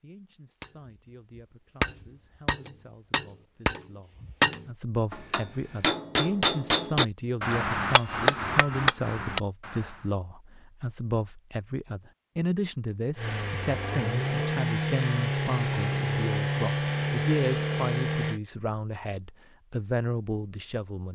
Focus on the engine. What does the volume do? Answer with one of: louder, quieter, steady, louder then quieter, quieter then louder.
steady.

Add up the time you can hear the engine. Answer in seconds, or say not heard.
5 s.